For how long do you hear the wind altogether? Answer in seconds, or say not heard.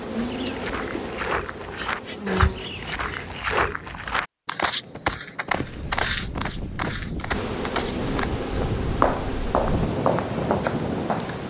6 s.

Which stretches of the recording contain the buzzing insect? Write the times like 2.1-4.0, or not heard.
0.0-3.5, 7.3-11.4.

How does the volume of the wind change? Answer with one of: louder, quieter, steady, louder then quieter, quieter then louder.
louder.